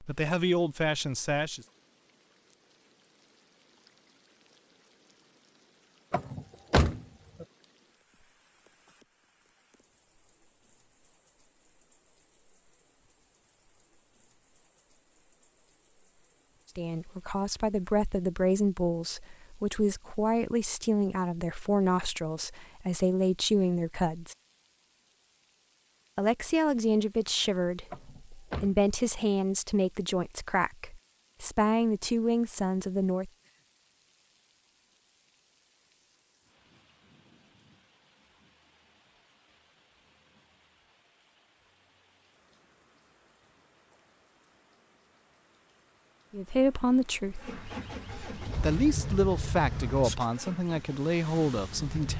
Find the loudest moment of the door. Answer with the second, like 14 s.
7 s.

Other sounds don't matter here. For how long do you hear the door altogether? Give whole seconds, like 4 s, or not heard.
3 s.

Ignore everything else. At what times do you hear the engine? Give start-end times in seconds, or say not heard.
47.4-52.1.